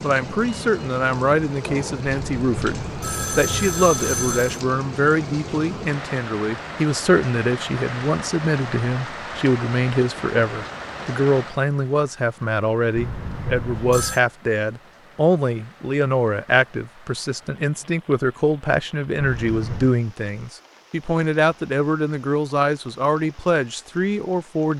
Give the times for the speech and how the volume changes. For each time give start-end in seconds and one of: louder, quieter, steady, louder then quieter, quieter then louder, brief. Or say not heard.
0.0-24.7 steady.